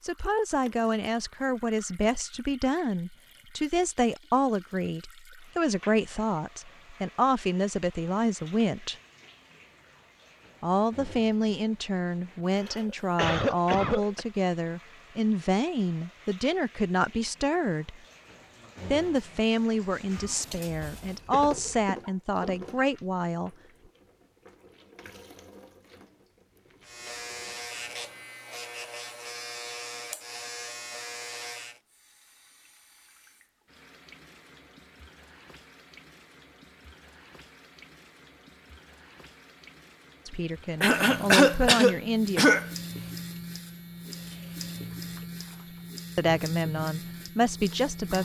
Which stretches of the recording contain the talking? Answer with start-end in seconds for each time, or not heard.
0.0-8.9, 10.6-17.9, 18.9-23.5, 40.2-42.5, 46.1-48.2.